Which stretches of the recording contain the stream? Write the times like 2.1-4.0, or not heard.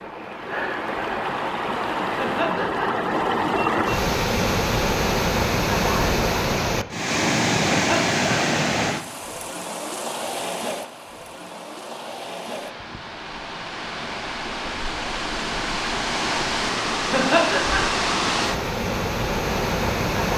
0.0-20.3.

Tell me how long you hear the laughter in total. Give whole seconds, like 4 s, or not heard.
2 s.